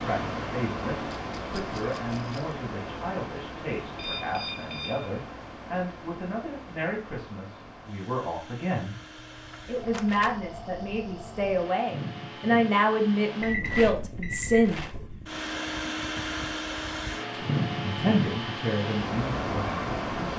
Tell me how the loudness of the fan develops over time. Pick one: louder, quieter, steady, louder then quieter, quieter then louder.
quieter then louder.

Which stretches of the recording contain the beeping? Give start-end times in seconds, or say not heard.
4.0-5.2, 13.4-14.7.